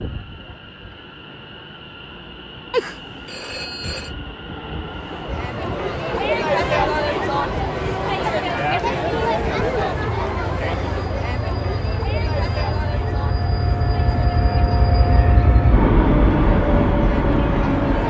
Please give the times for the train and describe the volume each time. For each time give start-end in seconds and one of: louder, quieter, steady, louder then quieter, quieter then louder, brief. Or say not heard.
0.0-18.0 louder.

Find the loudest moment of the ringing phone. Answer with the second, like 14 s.
3 s.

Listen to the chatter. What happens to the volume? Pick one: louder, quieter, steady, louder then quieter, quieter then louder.
quieter.